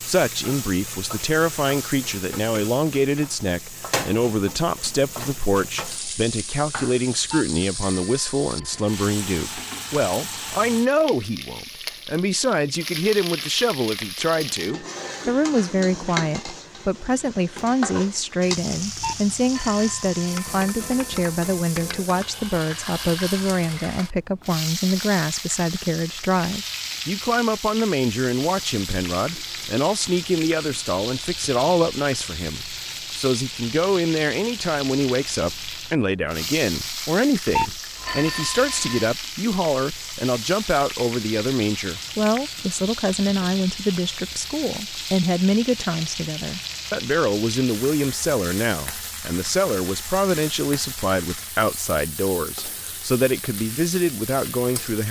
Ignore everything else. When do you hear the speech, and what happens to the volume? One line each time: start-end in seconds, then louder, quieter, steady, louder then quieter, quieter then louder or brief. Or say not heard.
0.1-55.0 steady.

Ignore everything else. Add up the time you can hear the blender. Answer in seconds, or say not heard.
not heard.